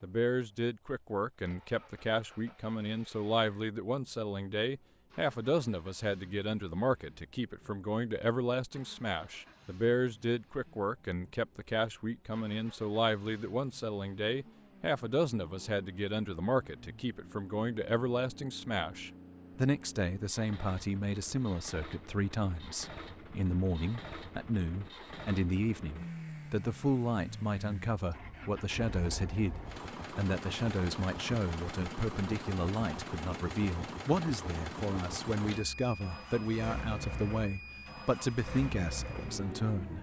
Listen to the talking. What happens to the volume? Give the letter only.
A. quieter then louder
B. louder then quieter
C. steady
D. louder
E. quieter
C.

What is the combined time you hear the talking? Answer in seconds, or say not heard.
40 s.